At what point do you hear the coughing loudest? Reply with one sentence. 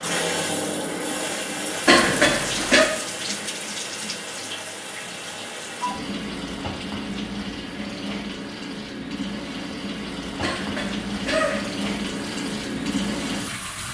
The loudest moment of the coughing is at 2 seconds.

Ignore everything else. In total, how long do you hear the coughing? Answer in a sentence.
You can hear the coughing for 2 seconds altogether.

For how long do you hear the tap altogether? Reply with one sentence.
The tap can be heard for 14 seconds in total.